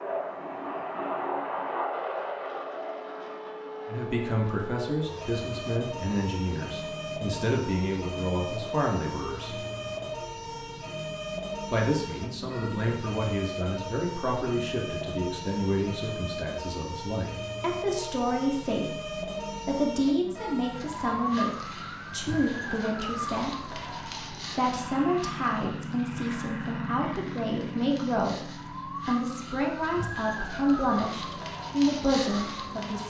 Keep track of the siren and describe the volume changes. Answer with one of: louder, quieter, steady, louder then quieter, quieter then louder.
steady.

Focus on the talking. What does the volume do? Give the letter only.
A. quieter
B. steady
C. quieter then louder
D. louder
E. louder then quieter
B.